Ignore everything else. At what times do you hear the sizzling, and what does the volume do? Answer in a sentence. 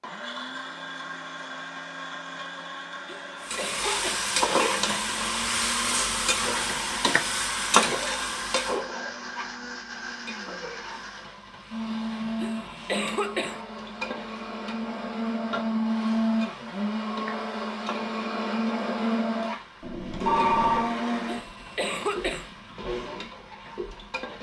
You can hear the sizzling from 3.4 to 24.3 s, getting quieter.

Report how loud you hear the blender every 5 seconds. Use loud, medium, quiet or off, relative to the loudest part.
medium, medium, medium, loud, medium.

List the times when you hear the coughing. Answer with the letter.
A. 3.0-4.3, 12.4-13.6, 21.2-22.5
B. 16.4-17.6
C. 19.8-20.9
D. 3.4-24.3
A.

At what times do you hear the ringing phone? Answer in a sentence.
The ringing phone can be heard from 19.8 to 20.9 s.